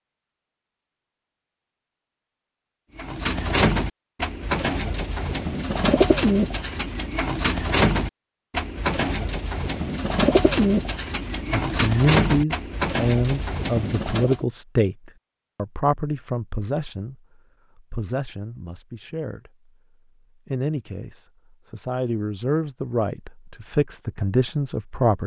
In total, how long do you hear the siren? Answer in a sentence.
The siren can't be heard in this clip.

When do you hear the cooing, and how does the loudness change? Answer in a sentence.
You can hear the cooing from 3.0 to 14.4 s, at a steady volume.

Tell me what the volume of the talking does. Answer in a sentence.
The volume of the talking goes down, then up.